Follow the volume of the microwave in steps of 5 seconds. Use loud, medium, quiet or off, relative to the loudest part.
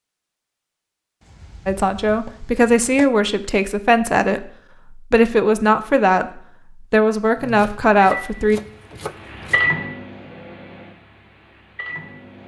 off, loud, quiet.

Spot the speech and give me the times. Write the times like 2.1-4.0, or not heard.
1.6-8.6.